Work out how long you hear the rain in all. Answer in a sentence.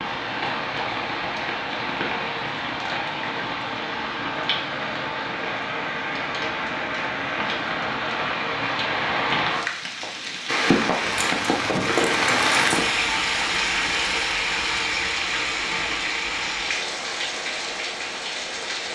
You can hear the rain for 19 seconds altogether.